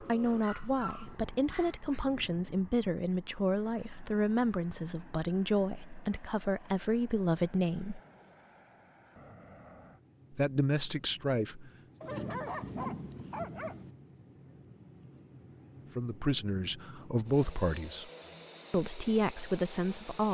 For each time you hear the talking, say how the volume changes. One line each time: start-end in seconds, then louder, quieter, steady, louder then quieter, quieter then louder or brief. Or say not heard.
0.0-8.0 steady
10.3-11.7 brief
15.9-18.1 brief
18.7-20.2 brief.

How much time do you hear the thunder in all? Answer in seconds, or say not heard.
2 s.